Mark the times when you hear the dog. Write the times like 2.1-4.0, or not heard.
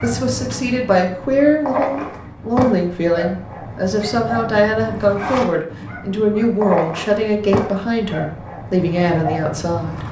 0.0-10.0.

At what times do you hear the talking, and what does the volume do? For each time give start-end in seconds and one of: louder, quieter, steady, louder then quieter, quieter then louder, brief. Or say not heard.
0.0-10.0 steady.